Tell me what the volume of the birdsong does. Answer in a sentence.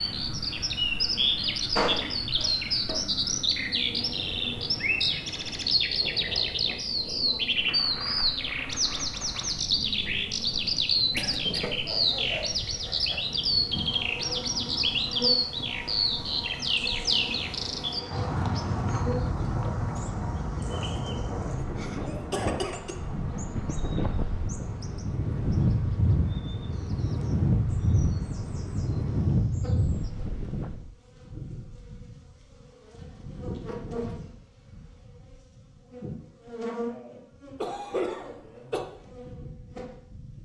The volume of the birdsong goes down.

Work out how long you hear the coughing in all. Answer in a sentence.
You can hear the coughing for 3 seconds altogether.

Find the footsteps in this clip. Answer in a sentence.
You can't hear the footsteps here.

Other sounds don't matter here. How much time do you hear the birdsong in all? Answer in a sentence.
You can hear the birdsong for 30 seconds altogether.